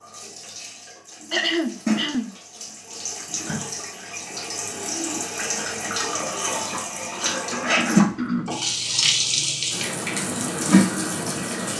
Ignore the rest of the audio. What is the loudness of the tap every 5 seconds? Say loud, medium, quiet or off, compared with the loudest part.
medium, loud, loud.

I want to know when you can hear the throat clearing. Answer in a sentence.
The throat clearing can be heard from 1.3 to 2.3 s and from 6.7 to 8.6 s.